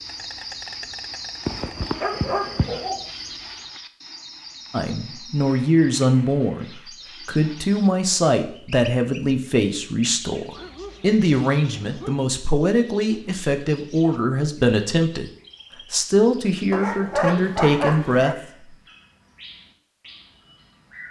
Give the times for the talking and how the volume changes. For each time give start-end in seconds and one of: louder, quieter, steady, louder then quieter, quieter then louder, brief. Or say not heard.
4.7-15.3 steady
15.9-18.4 brief.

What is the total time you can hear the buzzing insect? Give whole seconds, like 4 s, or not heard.
4 s.